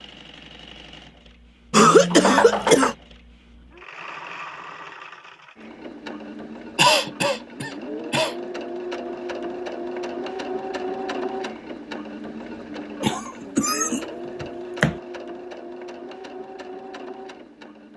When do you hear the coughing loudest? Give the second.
2 s.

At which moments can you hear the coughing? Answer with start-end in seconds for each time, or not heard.
1.7-3.0, 6.8-8.3, 13.0-14.9.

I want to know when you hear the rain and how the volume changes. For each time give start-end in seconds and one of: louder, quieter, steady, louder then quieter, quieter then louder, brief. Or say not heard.
not heard.